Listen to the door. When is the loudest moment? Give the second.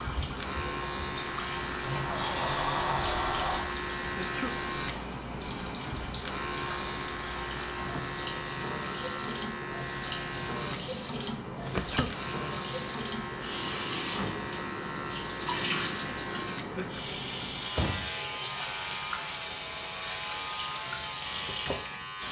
3 s.